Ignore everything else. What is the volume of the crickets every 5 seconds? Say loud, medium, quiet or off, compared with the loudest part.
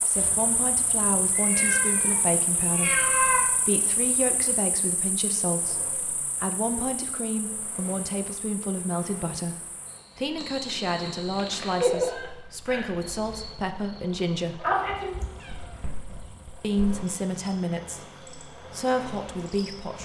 medium, quiet, loud, quiet.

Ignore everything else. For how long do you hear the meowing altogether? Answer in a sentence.
The meowing can be heard for 4 seconds in total.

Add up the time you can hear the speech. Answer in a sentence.
You can hear the speech for 18 seconds altogether.